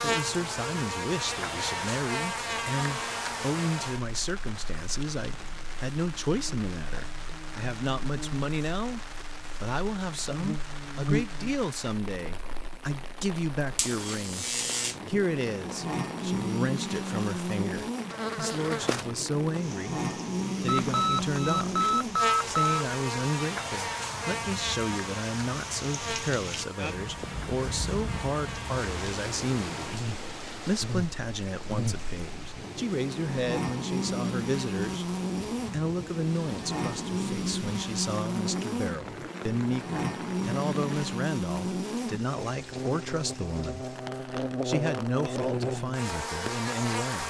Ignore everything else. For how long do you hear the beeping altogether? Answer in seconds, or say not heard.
2 s.